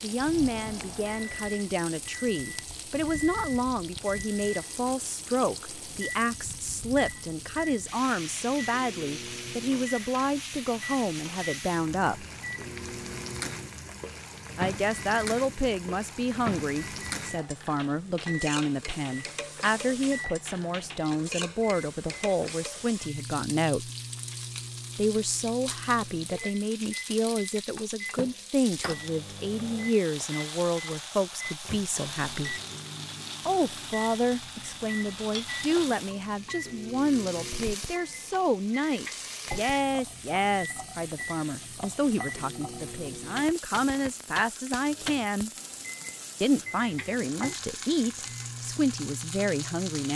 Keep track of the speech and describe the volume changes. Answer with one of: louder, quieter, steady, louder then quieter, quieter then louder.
steady.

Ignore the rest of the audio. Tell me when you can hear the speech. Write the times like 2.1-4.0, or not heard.
0.0-12.2, 14.6-23.9, 24.9-32.6, 33.5-45.5, 46.4-50.1.